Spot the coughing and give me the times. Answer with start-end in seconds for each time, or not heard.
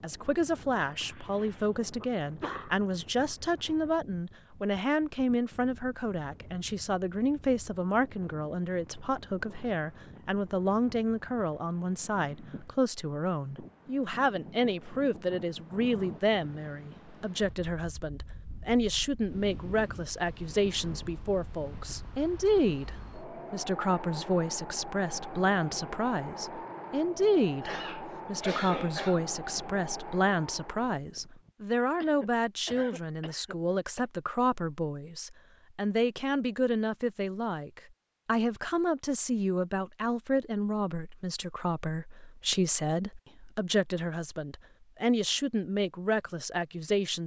0.8-2.8, 27.6-29.2, 32.0-34.0.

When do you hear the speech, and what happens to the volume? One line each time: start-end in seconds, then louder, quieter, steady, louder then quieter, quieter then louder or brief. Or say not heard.
0.0-47.2 steady.